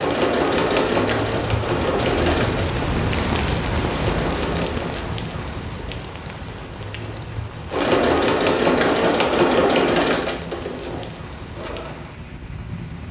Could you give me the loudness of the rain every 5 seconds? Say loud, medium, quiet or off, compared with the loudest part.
loud, medium, medium.